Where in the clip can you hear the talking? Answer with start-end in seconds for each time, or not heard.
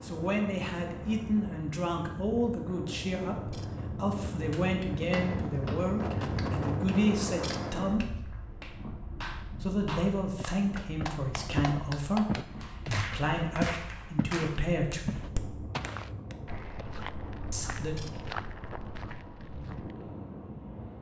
0.0-8.2, 9.6-15.2, 17.5-17.9.